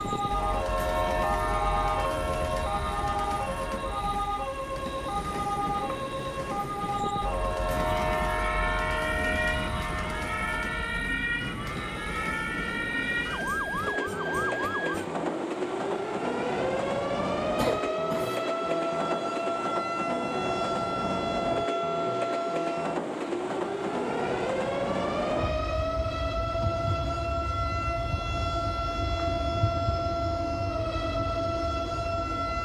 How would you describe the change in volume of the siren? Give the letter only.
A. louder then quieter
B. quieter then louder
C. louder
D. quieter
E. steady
E.